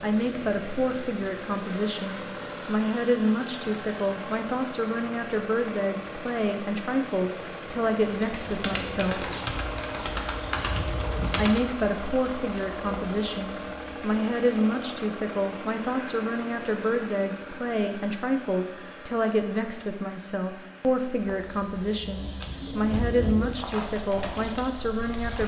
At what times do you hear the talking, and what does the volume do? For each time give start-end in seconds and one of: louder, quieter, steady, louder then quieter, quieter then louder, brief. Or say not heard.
0.0-9.3 steady
11.3-25.4 steady.